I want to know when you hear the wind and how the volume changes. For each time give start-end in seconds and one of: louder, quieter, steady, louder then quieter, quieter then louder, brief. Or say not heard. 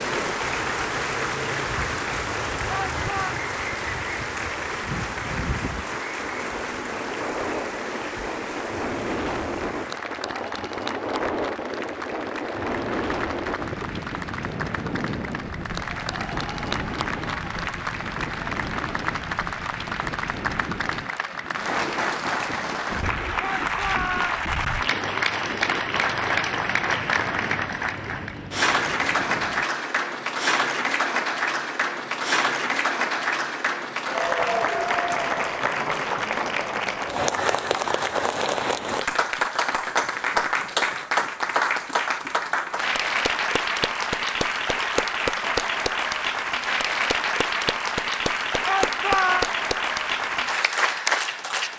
0.0-29.6 louder then quieter.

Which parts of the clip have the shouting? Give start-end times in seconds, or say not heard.
2.6-3.4, 23.4-24.4, 48.6-49.5.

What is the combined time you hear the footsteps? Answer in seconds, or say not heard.
not heard.